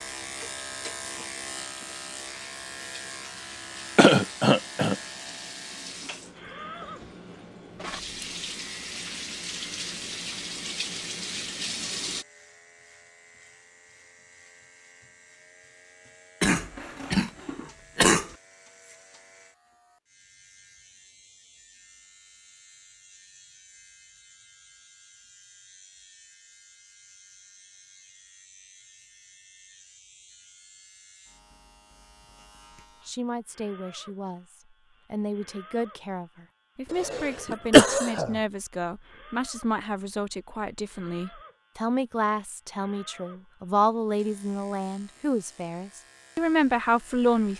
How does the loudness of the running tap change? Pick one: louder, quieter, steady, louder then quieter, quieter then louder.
louder.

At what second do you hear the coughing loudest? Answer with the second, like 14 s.
38 s.